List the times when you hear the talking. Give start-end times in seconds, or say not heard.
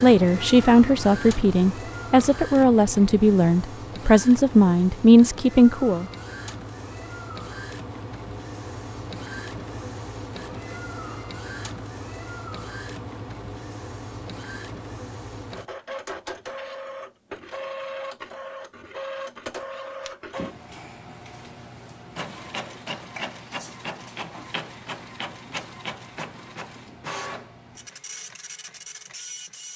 0.0-6.0.